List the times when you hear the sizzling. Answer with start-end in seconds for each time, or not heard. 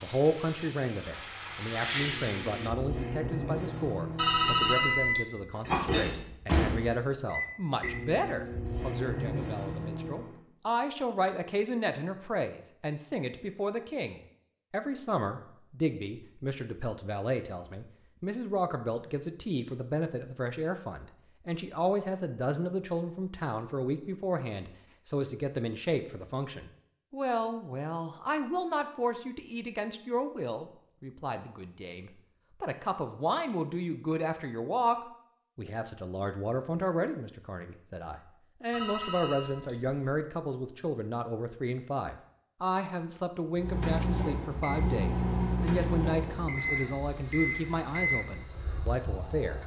0.0-2.7.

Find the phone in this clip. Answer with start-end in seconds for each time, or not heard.
4.2-5.2, 38.7-40.0.